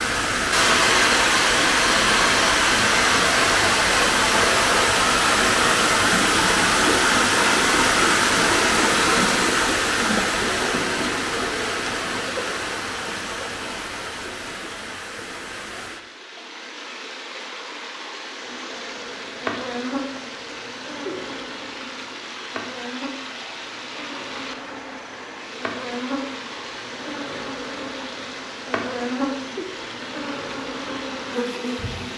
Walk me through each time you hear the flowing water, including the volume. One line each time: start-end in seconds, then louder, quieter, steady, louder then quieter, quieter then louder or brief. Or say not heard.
0.0-32.1 quieter.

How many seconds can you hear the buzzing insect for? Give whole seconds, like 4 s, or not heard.
14 s.